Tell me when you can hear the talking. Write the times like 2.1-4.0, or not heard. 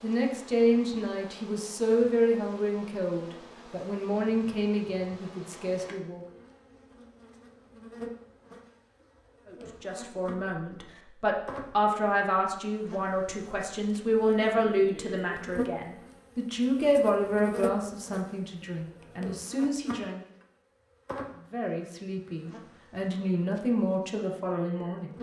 0.0-6.2, 9.4-20.2, 21.5-25.1.